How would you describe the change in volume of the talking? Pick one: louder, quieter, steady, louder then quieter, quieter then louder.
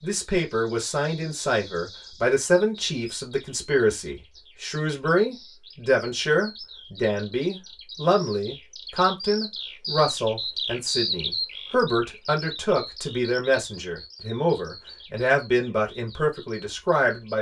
steady.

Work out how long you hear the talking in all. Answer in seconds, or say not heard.
17 s.